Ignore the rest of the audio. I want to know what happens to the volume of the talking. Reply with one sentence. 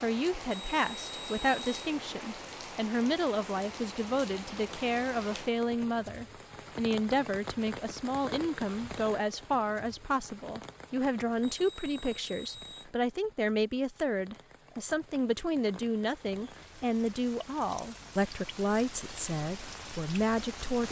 The volume of the talking stays about the same.